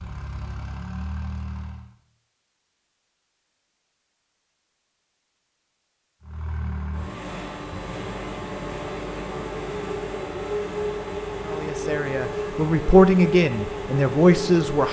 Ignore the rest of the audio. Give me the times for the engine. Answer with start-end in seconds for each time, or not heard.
0.0-1.9, 6.2-14.8.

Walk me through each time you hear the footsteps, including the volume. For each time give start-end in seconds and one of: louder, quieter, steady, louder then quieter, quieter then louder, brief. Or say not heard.
not heard.